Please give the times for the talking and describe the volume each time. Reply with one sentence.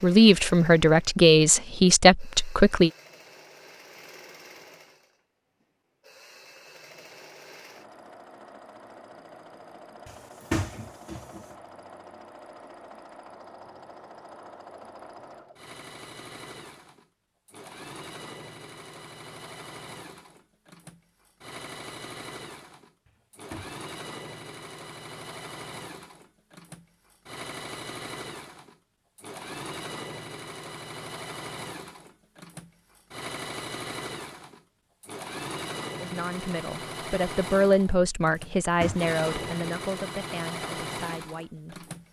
You can hear the talking briefly from 0.0 to 2.9 s; and from 36.0 to 41.9 s, getting louder then quieter.